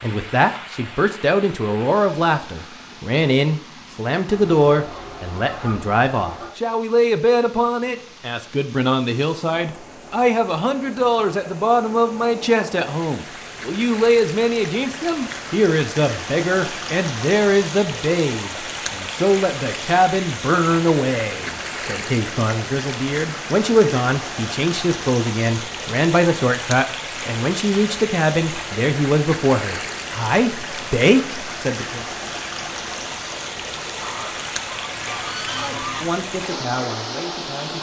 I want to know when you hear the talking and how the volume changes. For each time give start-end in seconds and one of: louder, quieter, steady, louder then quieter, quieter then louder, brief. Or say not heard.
0.0-32.0 steady
35.5-37.7 brief.